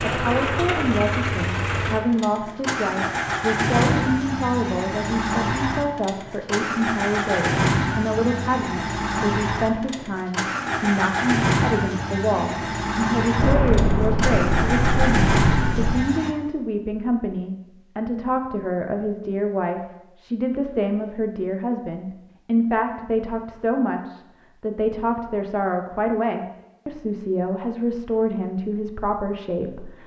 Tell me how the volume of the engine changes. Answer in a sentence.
The loudness of the engine stays about the same.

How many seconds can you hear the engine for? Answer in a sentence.
The engine can be heard for 16 seconds in total.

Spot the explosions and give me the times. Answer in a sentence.
The explosions can be heard from 13.3 to 15.9 s.